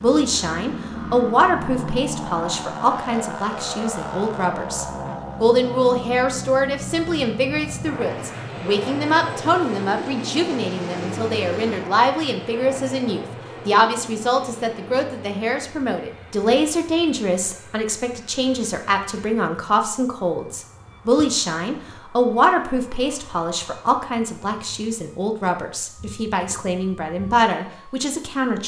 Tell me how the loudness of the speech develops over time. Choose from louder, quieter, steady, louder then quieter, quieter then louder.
steady.